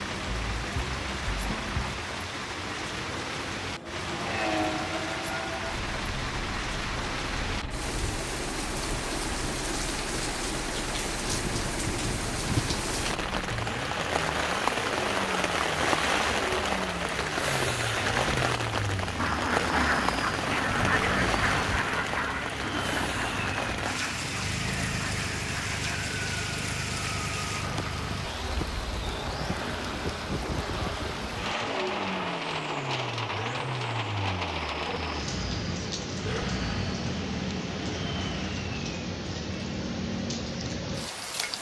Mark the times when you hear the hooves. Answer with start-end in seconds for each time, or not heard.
not heard.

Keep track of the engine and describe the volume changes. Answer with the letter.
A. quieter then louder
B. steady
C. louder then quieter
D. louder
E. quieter
B.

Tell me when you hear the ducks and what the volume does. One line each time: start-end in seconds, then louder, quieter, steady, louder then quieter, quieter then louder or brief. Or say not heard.
19.1-25.8 quieter.